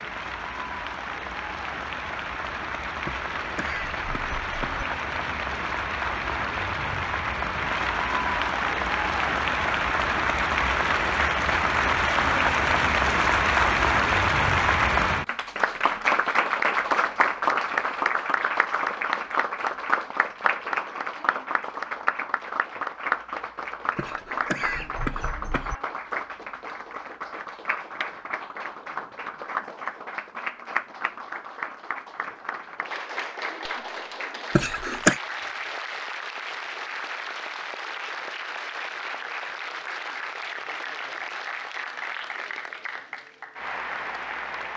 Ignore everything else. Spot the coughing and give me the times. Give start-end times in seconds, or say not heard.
3.0-4.8, 23.9-25.8, 34.5-35.2.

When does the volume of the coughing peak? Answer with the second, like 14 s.
35 s.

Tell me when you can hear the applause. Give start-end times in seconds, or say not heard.
0.0-44.7.